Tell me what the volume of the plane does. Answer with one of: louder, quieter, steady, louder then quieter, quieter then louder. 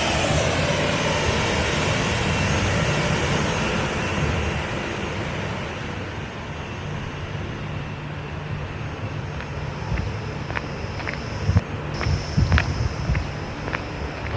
quieter.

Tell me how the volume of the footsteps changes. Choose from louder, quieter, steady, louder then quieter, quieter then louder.
louder then quieter.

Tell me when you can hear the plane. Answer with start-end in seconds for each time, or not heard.
0.0-14.3.